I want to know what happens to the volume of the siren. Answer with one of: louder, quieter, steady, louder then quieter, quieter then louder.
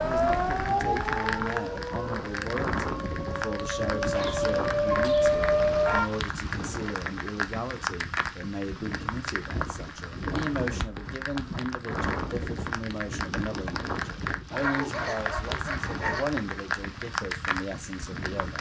quieter then louder.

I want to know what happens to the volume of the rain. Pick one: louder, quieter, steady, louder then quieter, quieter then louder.
steady.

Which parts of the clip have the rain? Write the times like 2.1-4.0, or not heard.
0.0-18.5.